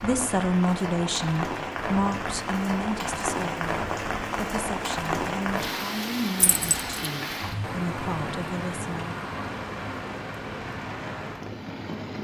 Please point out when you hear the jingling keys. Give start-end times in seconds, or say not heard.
6.4-7.1.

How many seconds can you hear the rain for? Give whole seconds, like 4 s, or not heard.
12 s.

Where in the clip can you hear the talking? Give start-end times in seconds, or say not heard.
0.0-9.2.